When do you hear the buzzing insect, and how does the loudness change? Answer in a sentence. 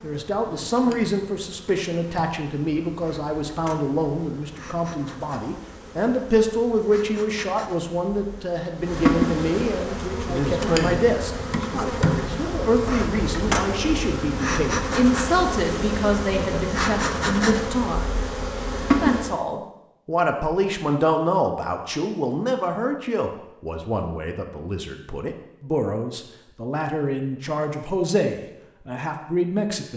You can hear the buzzing insect from 0.0 to 19.4 s, getting louder.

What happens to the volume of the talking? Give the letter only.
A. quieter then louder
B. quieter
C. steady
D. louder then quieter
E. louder
C.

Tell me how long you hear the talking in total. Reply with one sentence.
You can hear the talking for 29 seconds altogether.